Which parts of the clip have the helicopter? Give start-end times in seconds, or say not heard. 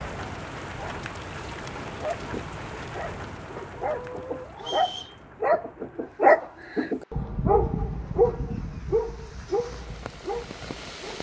not heard.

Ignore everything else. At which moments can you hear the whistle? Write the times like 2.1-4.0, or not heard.
4.5-5.2.